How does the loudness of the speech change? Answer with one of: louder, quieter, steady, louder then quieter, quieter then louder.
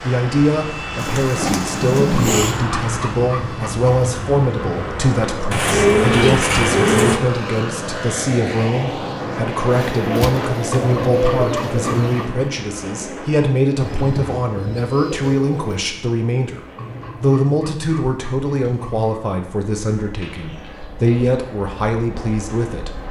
steady.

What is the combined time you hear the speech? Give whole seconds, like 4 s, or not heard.
22 s.